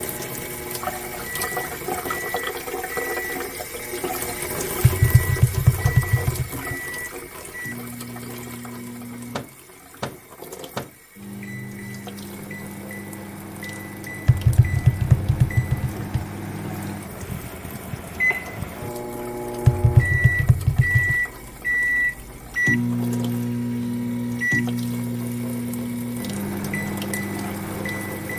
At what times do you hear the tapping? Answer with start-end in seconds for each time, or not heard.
4.8-6.8, 14.2-16.2, 19.6-21.1.